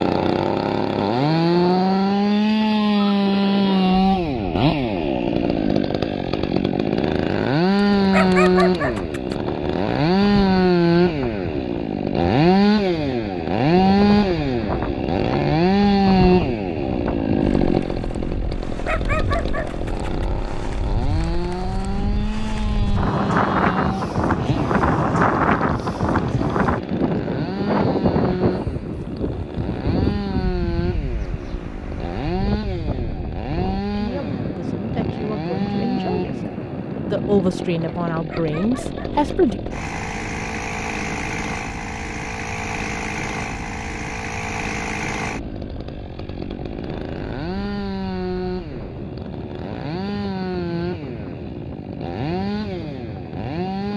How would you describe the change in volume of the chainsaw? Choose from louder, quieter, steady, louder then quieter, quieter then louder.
quieter.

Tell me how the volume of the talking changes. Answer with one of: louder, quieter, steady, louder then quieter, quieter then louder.
louder.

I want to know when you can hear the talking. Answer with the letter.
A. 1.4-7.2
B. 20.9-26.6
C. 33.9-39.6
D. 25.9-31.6
C.